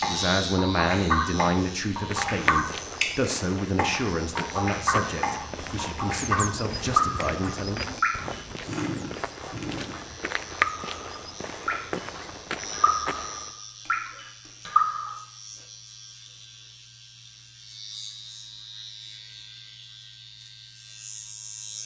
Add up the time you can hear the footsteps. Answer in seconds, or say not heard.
12 s.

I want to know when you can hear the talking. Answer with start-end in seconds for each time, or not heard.
0.0-8.0.